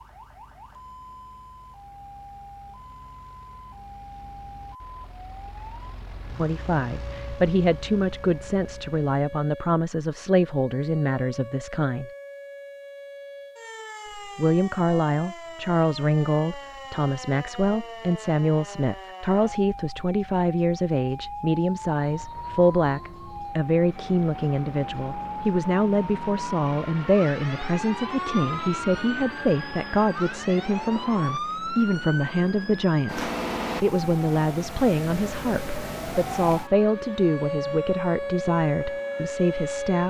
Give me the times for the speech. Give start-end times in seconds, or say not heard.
6.3-12.1, 14.2-40.0.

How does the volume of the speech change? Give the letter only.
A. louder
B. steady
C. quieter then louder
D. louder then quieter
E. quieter
B.